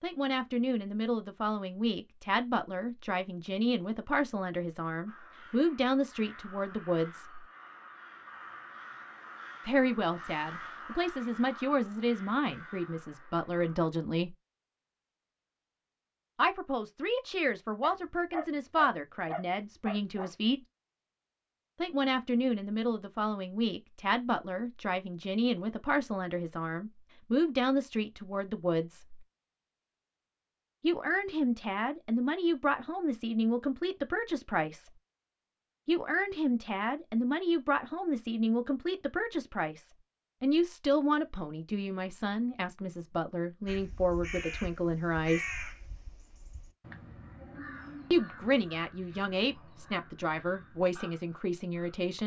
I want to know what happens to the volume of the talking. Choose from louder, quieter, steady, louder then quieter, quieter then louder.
steady.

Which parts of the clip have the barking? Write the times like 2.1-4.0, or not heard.
17.8-20.3.